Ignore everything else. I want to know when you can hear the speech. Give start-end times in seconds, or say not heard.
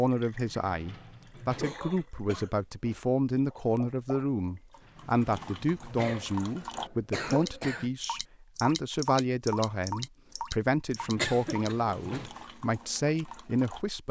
0.0-14.0.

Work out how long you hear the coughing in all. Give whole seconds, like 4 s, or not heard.
4 s.